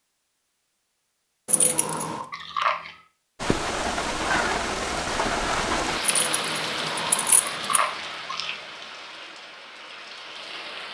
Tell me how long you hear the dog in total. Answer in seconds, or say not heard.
not heard.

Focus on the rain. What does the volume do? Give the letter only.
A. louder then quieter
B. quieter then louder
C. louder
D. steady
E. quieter
E.